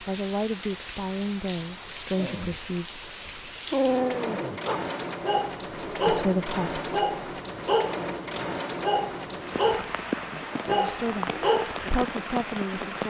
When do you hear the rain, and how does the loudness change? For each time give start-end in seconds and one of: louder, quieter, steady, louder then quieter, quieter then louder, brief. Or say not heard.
0.0-13.0 steady.